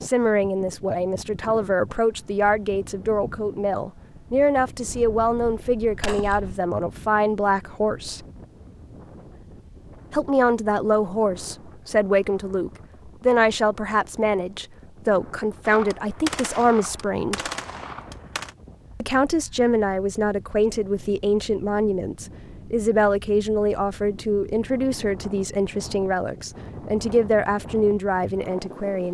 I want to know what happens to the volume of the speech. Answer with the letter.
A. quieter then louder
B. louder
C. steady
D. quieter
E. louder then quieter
C.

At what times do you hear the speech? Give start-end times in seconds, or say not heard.
0.0-8.2, 10.1-17.4, 19.0-29.0.